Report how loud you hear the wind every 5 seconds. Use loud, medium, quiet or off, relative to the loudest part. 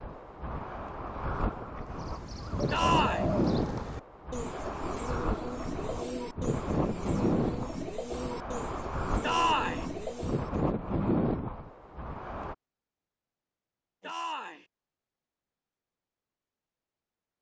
loud, loud, loud, off.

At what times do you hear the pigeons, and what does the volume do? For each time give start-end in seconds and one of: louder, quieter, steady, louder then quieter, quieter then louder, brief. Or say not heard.
1.8-10.7 steady.